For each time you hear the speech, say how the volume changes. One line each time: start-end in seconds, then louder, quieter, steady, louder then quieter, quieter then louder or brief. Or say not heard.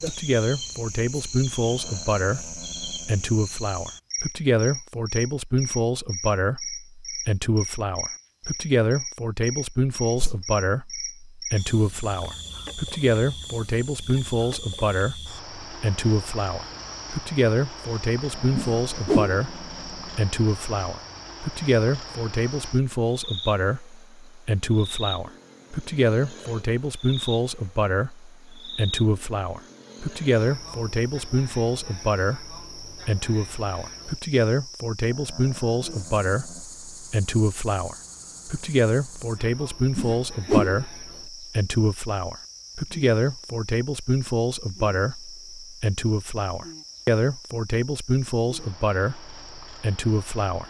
0.0-50.6 steady.